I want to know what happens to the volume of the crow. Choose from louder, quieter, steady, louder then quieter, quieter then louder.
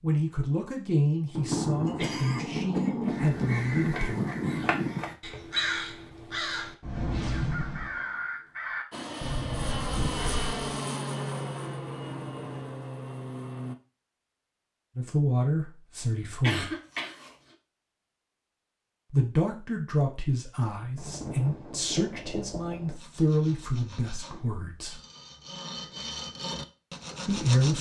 steady.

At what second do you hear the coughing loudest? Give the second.
17 s.